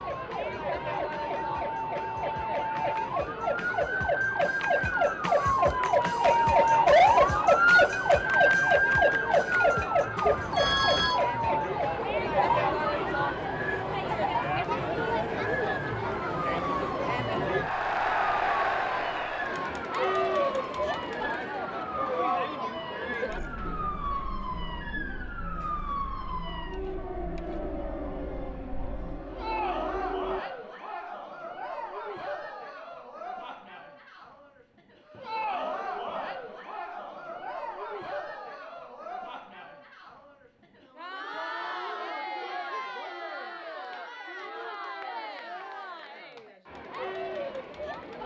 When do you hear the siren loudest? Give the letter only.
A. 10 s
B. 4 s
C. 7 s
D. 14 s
C.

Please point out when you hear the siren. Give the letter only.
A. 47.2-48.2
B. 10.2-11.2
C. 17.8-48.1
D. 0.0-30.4
D.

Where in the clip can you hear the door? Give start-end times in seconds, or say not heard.
not heard.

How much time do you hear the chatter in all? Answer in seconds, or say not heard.
48 s.